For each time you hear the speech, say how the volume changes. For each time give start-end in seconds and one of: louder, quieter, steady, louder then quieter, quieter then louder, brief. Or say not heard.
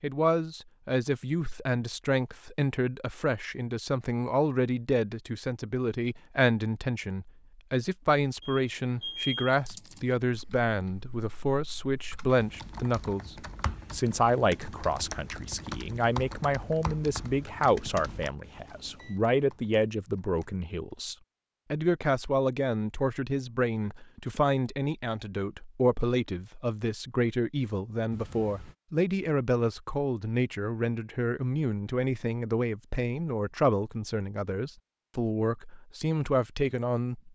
0.0-37.3 steady.